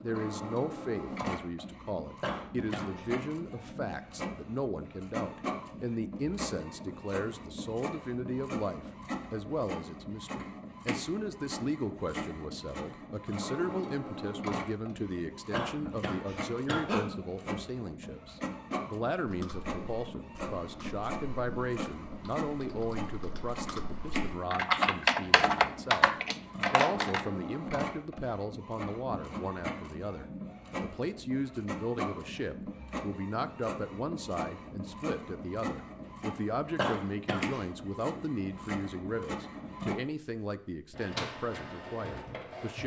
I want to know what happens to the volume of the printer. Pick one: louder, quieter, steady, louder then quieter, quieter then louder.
steady.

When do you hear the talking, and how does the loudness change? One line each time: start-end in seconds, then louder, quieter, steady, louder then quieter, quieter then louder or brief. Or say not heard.
0.0-26.1 steady
26.7-42.8 steady.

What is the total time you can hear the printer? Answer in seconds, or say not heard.
43 s.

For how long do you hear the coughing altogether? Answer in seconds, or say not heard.
3 s.